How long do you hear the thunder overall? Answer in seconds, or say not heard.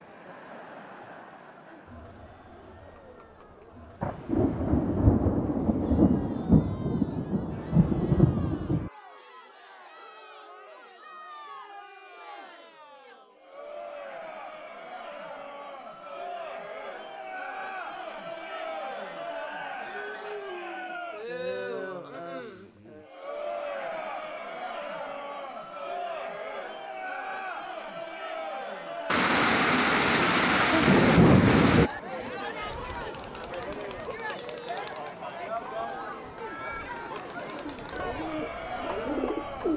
8 s.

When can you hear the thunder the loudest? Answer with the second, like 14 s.
31 s.